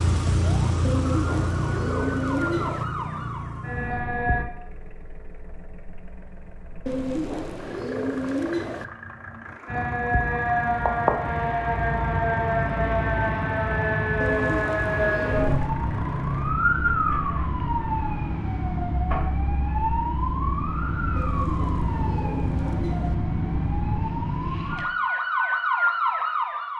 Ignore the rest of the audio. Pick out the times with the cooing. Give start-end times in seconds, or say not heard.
0.8-2.9, 6.8-8.8, 14.2-15.8, 21.1-23.1.